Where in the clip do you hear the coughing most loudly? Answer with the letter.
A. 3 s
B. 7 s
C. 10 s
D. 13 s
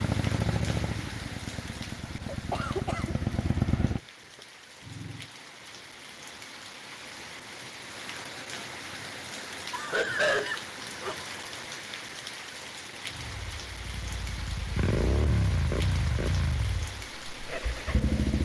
C.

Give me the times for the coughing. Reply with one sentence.
You can hear the coughing from 2.2 to 3.1 s and from 9.7 to 11.2 s.